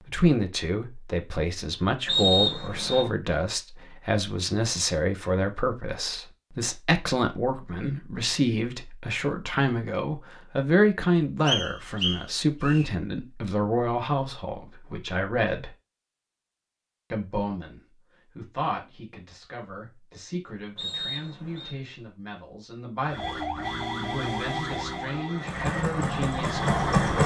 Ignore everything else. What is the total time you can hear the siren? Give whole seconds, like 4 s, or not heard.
4 s.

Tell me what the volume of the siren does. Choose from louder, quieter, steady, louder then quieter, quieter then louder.
quieter then louder.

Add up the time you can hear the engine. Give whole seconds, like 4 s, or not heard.
2 s.